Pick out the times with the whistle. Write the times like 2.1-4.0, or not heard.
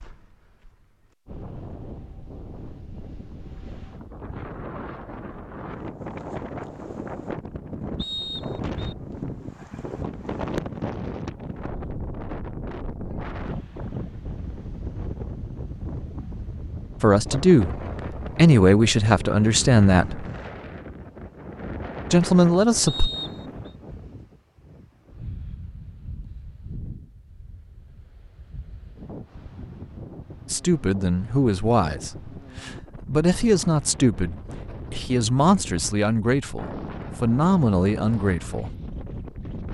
8.0-8.9, 22.9-23.7.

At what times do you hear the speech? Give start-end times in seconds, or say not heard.
17.0-20.2, 22.1-23.1, 30.4-38.7.